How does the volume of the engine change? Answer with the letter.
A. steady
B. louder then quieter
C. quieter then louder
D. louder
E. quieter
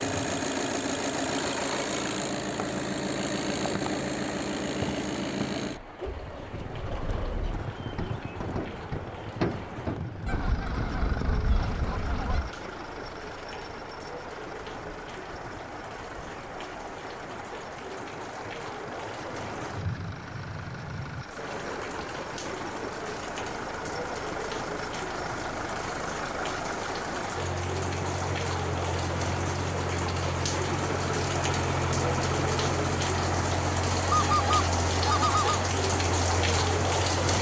C.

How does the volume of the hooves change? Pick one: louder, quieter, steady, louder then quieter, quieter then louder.
steady.